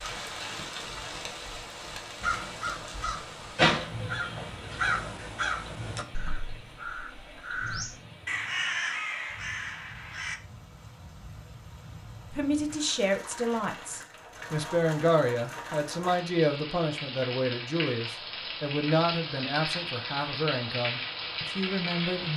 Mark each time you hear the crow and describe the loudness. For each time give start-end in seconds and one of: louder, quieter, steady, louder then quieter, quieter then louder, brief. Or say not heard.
2.2-10.4 quieter then louder.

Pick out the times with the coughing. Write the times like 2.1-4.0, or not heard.
not heard.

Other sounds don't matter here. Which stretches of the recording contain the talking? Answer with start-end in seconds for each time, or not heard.
12.3-22.3.